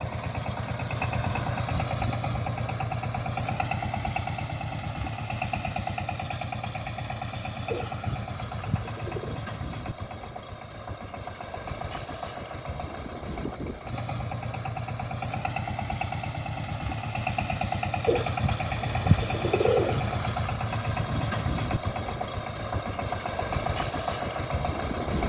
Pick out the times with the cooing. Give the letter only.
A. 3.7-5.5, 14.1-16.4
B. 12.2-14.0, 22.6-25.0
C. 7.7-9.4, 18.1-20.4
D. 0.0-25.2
C.